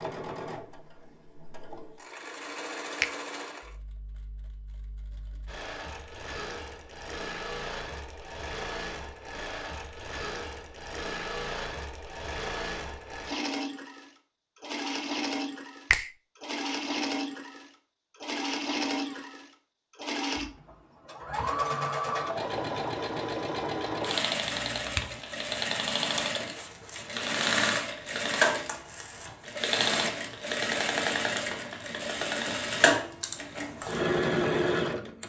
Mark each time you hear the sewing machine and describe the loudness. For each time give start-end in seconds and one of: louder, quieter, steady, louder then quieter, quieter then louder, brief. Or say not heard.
0.0-35.2 louder.